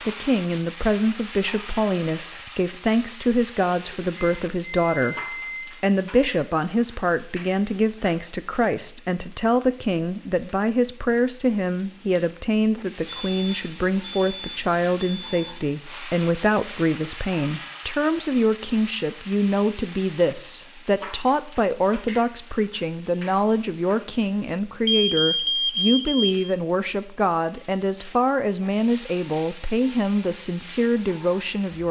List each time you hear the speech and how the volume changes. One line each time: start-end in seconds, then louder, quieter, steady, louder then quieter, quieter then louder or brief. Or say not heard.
0.1-31.8 steady.